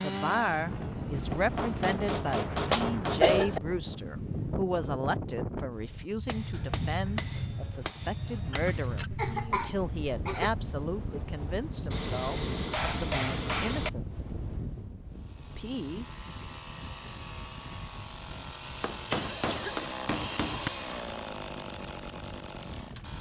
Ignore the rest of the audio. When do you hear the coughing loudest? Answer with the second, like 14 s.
3 s.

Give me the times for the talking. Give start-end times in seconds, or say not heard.
0.0-14.2, 15.5-16.1.